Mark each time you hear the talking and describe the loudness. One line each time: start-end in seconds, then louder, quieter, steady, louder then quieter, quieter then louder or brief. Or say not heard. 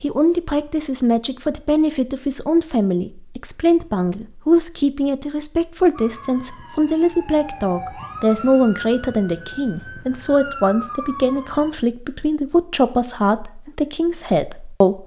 0.0-15.0 steady.